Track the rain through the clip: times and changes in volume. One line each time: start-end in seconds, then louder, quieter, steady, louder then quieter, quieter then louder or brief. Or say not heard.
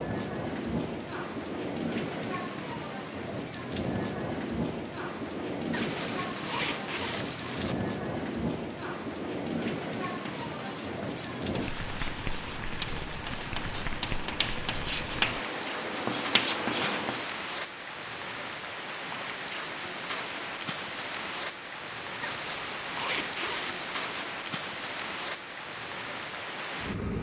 0.0-27.1 steady.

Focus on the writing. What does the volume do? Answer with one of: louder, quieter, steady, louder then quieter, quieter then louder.
louder.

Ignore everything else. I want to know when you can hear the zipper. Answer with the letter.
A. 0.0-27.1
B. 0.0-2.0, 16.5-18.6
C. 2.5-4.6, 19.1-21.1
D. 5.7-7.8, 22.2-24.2
D.